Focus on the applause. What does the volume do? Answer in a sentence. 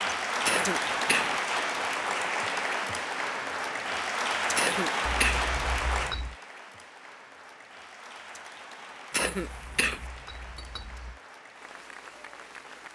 The volume of the applause goes down.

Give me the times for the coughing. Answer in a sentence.
The coughing can be heard from 0.5 to 1.4 s, from 4.5 to 5.5 s and from 9.1 to 10.0 s.